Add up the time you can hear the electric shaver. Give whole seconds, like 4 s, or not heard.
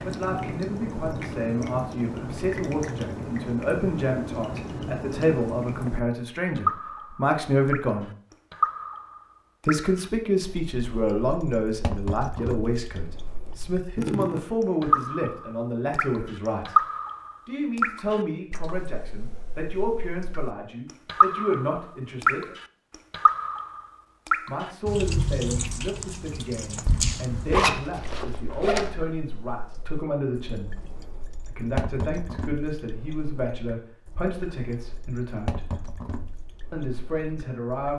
not heard.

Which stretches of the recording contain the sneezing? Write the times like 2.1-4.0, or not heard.
not heard.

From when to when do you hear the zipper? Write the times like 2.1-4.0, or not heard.
27.5-28.9.